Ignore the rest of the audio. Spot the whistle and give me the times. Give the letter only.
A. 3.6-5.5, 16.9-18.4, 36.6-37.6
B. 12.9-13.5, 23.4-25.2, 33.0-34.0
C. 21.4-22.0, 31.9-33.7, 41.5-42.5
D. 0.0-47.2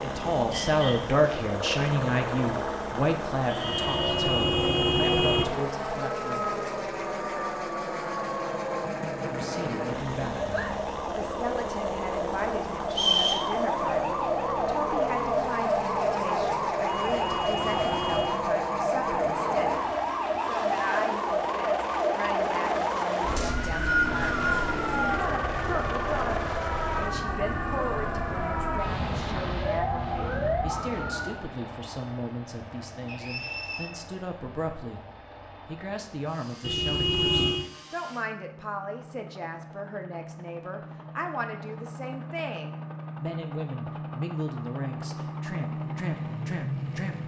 B.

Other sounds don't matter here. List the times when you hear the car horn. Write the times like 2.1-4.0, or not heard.
3.6-5.5, 16.9-18.4, 36.6-37.6.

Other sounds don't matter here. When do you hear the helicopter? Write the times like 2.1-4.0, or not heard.
0.0-47.2.